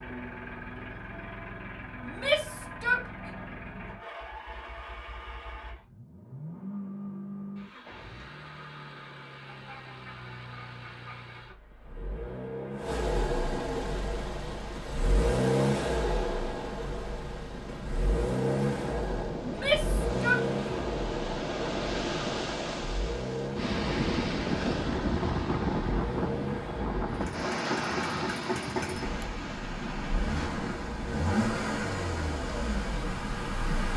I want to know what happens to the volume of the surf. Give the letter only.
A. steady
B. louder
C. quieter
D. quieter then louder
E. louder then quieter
E.